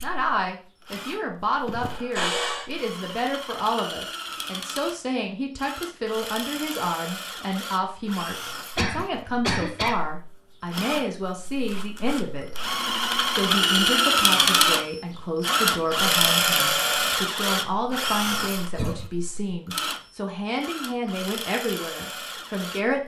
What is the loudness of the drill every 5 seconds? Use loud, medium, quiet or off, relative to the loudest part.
quiet, quiet, loud, loud, quiet.